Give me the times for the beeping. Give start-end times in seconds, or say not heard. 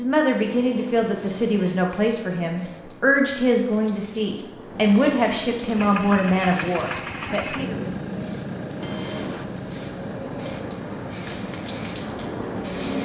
0.4-1.8, 5.0-6.0, 8.8-9.4.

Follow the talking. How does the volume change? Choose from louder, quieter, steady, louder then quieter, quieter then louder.
steady.